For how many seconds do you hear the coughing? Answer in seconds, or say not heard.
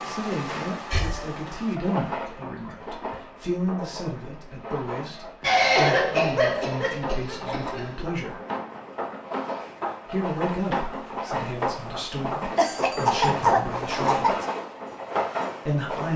5 s.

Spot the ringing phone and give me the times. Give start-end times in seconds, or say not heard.
not heard.